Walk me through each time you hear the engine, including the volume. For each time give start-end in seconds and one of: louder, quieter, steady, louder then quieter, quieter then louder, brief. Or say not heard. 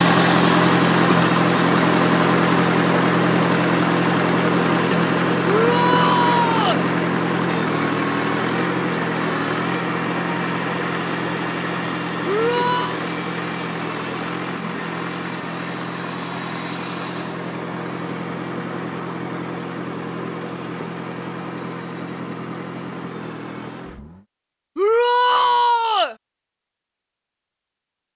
0.0-24.2 quieter.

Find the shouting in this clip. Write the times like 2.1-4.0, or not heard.
5.5-6.8, 12.2-12.9, 24.8-26.1.